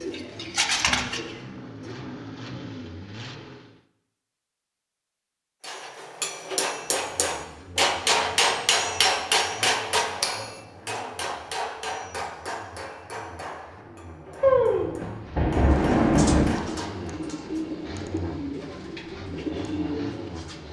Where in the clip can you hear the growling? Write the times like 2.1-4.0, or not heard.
not heard.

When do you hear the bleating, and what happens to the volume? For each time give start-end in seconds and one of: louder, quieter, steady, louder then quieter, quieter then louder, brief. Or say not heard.
not heard.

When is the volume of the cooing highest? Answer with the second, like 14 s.
1 s.